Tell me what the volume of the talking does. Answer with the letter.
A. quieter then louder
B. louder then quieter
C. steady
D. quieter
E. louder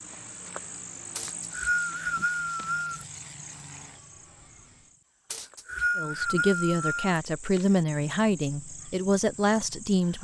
A.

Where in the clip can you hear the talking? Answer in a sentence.
You can hear the talking from 6.0 to 10.1 s.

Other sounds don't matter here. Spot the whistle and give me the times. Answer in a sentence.
You can hear the whistle from 1.1 to 3.0 s and from 5.3 to 7.2 s.